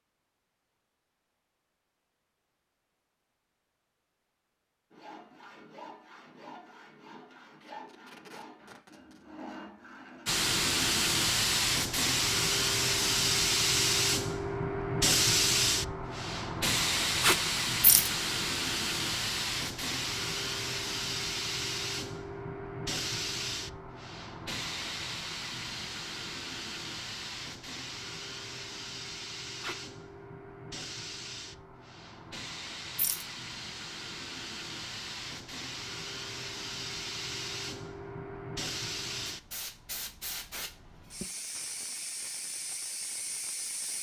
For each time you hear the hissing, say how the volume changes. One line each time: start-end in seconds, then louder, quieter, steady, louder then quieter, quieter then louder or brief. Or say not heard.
10.2-43.9 quieter.